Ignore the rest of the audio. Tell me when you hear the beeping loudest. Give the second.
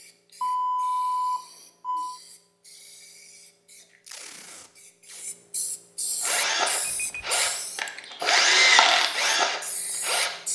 1 s.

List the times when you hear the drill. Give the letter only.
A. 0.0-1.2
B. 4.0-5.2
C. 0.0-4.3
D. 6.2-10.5
D.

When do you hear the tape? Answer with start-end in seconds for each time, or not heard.
4.0-5.2.